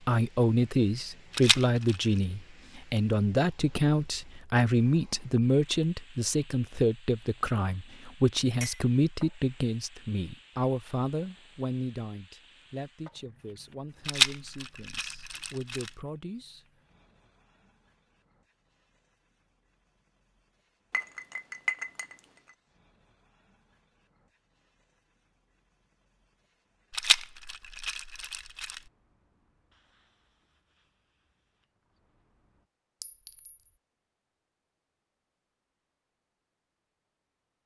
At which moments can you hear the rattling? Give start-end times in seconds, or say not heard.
1.3-1.9, 14.1-15.9, 26.9-28.8.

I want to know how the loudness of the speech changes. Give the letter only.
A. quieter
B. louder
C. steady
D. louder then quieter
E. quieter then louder
A.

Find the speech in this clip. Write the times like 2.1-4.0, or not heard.
0.1-16.6.